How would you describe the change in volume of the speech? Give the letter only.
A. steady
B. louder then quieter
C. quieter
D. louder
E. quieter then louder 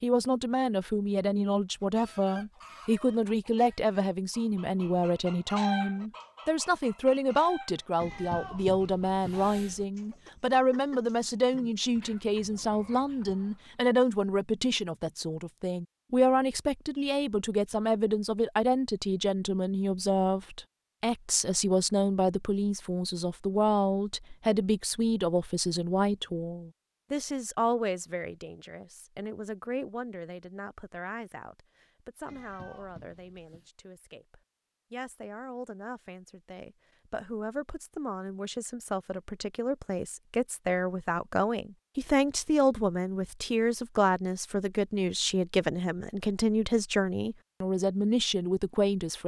E.